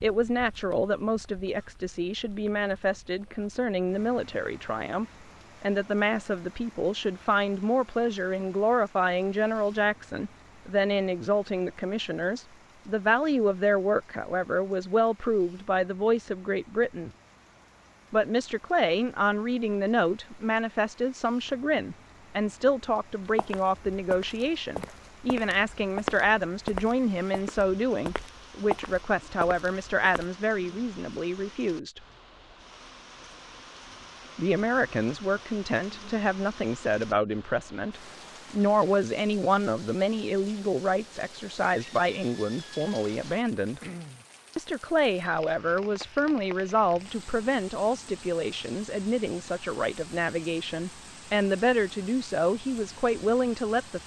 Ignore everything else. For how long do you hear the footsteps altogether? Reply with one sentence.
You can hear the footsteps for 7 seconds altogether.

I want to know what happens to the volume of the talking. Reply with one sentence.
The volume of the talking stays about the same.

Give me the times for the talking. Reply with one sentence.
You can hear the talking from 0.0 to 17.1 s, from 18.1 to 32.0 s, from 34.4 to 43.8 s and from 44.5 to 54.0 s.